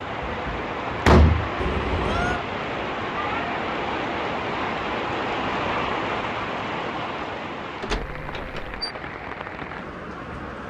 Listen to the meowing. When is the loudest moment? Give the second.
2 s.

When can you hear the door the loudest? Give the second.
1 s.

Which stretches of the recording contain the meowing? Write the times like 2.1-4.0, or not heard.
1.6-2.4, 7.9-8.6.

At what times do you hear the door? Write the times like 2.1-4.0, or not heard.
0.2-1.5, 7.8-8.9.